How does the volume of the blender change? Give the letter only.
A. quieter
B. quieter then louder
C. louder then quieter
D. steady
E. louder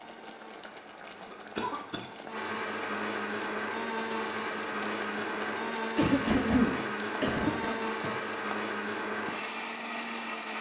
E.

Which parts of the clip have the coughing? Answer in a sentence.
You can hear the coughing from 1.2 to 2.1 s and from 6.0 to 8.2 s.